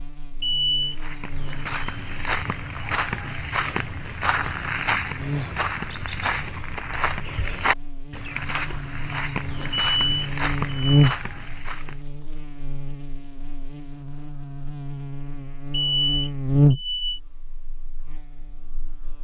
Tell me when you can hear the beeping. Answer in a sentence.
You can hear the beeping from 0.4 to 0.9 s, from 9.9 to 11.1 s and from 15.7 to 17.2 s.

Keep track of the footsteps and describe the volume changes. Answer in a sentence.
The volume of the footsteps stays about the same.